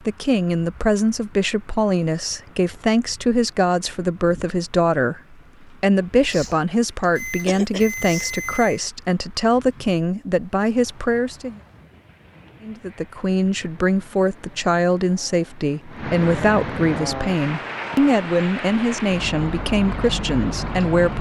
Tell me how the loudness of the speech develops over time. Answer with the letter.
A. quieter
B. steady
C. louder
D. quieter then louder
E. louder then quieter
B.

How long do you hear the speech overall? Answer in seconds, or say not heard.
20 s.